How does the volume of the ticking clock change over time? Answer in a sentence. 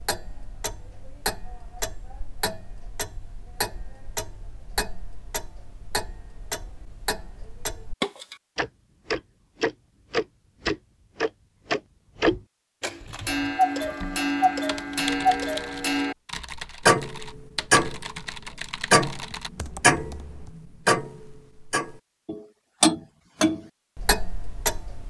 The volume of the ticking clock goes up.